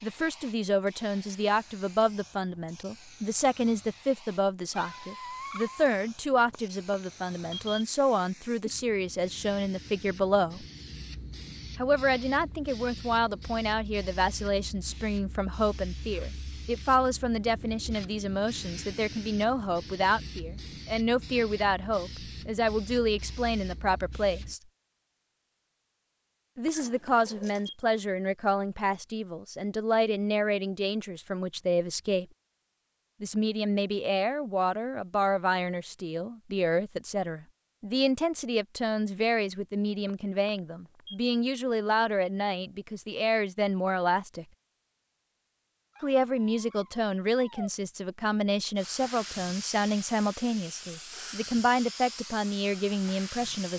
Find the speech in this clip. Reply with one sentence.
You can hear the speech from 0.0 to 10.7 s, from 11.8 to 24.6 s, from 26.6 to 32.2 s, from 33.2 to 44.5 s and from 46.0 to 53.7 s.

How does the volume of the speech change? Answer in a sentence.
The volume of the speech stays about the same.